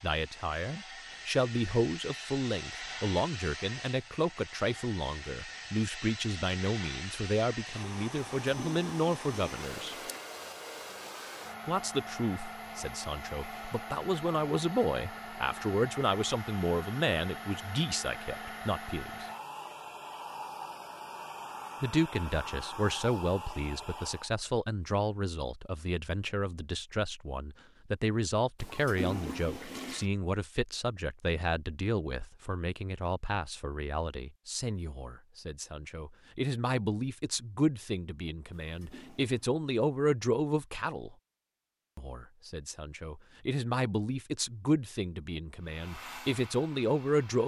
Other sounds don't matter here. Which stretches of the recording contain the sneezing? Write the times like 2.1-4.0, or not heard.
not heard.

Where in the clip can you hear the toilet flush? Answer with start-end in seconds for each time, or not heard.
8.4-10.2, 28.6-30.1, 38.5-39.5.